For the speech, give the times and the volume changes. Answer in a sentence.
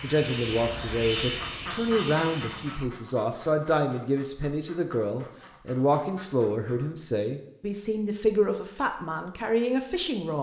You can hear the speech from 0.0 to 10.3 s, at a steady volume.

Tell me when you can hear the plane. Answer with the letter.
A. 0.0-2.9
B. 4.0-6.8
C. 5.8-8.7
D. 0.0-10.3
A.